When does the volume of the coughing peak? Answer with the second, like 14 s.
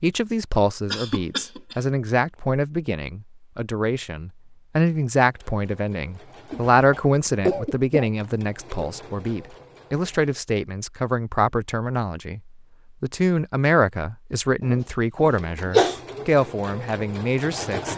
16 s.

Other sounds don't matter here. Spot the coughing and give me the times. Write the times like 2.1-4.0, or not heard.
0.9-1.8, 6.5-8.1, 14.6-16.0.